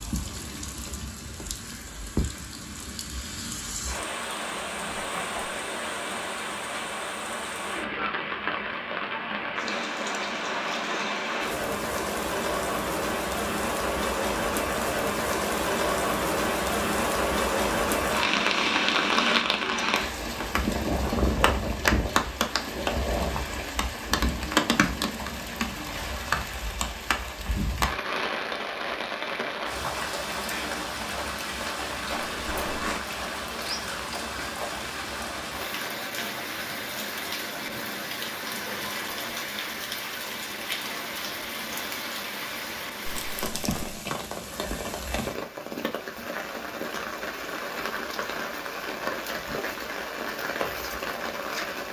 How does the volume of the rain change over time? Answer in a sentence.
The loudness of the rain goes up, then down.